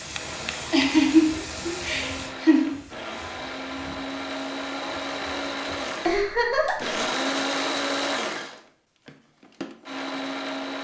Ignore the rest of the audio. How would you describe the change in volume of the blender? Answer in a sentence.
The volume of the blender goes up, then down.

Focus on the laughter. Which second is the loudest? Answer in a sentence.
The volume of the laughter peaks at 1 second.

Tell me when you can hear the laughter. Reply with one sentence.
You can hear the laughter from 0.7 to 2.7 s and from 6.0 to 7.0 s.